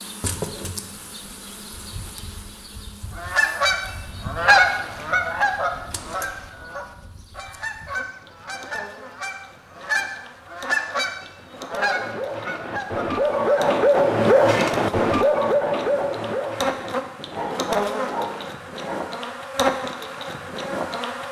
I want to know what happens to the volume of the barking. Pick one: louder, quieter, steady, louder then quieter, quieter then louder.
louder then quieter.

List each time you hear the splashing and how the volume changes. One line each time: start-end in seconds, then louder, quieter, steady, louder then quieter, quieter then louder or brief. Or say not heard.
not heard.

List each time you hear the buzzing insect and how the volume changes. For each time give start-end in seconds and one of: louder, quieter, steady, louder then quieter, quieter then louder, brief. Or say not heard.
0.0-21.2 quieter then louder.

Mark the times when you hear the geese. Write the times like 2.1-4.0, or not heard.
3.1-13.7.